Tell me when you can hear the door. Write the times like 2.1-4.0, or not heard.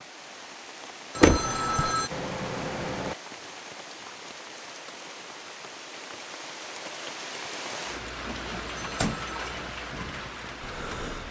1.2-1.9, 8.2-9.2.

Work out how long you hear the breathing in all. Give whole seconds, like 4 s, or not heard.
2 s.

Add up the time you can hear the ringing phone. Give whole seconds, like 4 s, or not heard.
3 s.